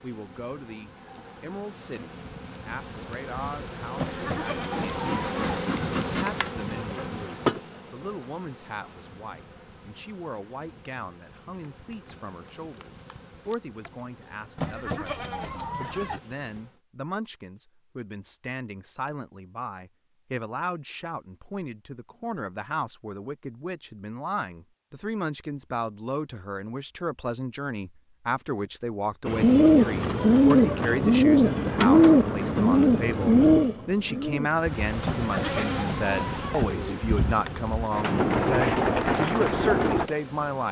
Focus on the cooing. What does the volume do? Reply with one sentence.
The volume of the cooing goes down, then up.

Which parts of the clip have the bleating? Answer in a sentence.
You can hear the bleating from 4.0 to 5.6 s, from 14.6 to 16.2 s and from 35.0 to 36.6 s.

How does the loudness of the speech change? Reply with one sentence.
The loudness of the speech goes up.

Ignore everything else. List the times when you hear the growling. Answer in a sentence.
You can't hear the growling here.